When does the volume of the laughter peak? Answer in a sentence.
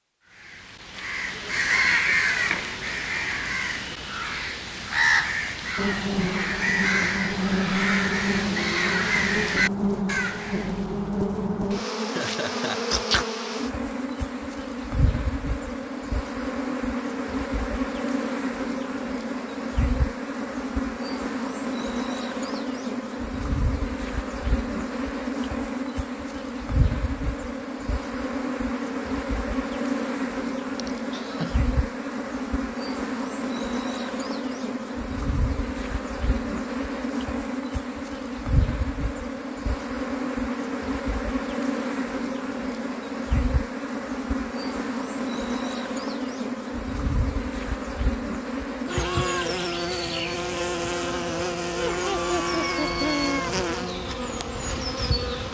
The volume of the laughter peaks at 53 seconds.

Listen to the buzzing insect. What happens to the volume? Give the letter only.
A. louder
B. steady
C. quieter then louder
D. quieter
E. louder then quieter
B.